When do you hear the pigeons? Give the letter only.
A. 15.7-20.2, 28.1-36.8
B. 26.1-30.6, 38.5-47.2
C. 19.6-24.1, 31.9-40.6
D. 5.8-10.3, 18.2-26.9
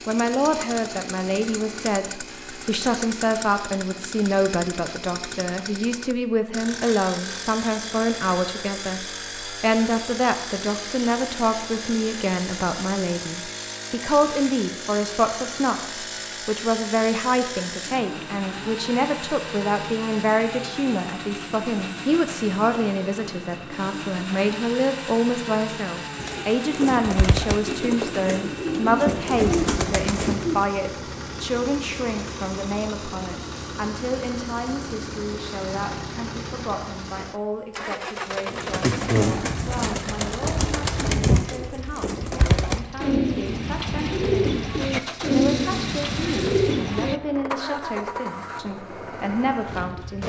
B.